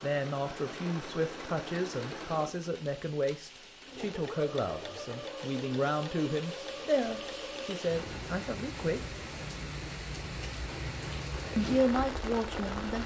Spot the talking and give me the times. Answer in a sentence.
The talking can be heard from 0.0 to 9.2 s and from 11.6 to 13.0 s.